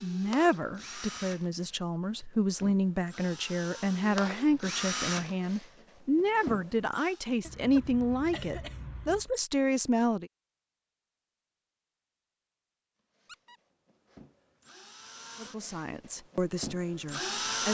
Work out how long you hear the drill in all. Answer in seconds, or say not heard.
12 s.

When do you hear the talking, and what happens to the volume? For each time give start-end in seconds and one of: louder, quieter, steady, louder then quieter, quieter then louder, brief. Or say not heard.
0.0-10.3 steady
15.3-17.6 brief.